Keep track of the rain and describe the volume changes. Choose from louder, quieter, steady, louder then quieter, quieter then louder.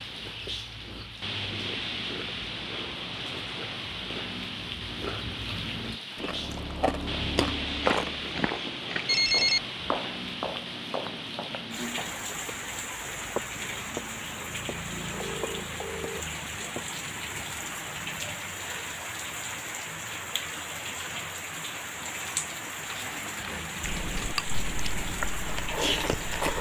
steady.